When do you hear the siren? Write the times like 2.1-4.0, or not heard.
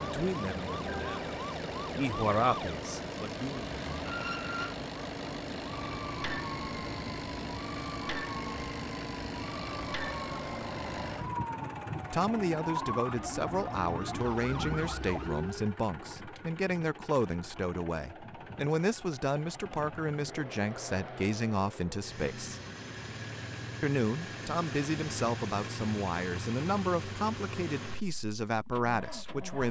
0.0-15.7.